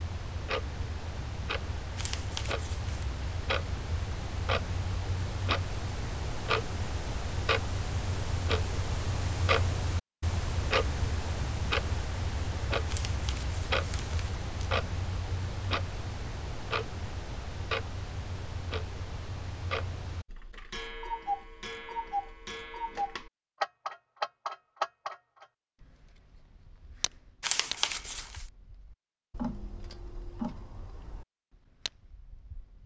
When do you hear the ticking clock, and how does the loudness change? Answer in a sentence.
You can hear the ticking clock from 0.0 to 32.8 s, getting quieter.